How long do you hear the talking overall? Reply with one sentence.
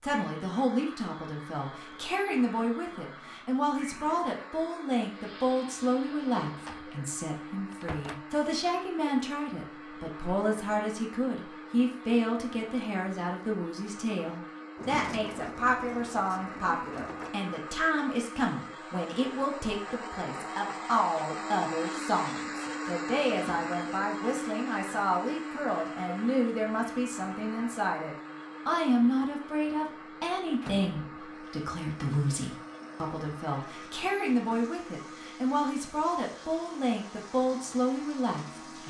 The talking can be heard for 39 seconds in total.